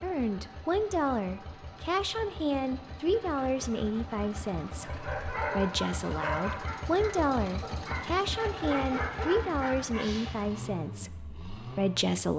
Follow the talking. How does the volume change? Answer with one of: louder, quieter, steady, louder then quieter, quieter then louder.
steady.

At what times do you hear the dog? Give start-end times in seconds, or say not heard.
4.8-10.4.